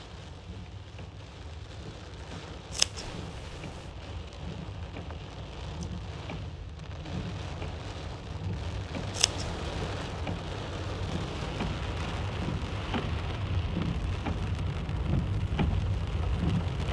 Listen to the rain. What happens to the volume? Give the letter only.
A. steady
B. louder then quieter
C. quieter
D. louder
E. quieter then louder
D.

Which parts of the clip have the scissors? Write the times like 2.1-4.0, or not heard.
2.7-3.9, 9.1-9.5.